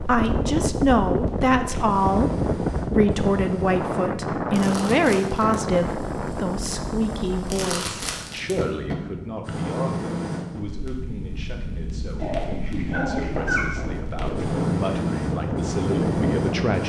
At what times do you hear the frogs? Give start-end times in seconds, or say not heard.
not heard.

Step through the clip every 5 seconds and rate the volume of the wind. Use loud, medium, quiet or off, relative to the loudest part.
loud, medium, medium, loud.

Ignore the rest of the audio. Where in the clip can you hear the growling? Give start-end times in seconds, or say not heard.
12.2-13.9.